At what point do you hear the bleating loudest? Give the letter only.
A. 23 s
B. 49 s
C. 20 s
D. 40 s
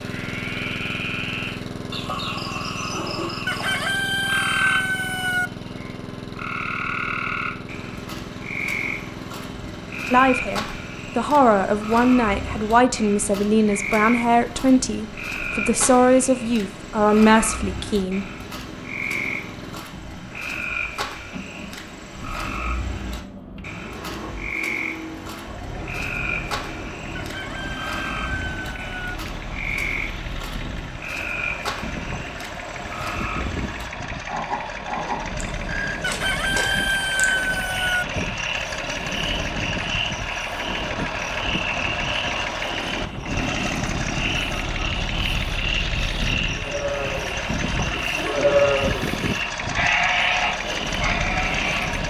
B.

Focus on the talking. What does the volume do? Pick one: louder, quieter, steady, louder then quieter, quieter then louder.
steady.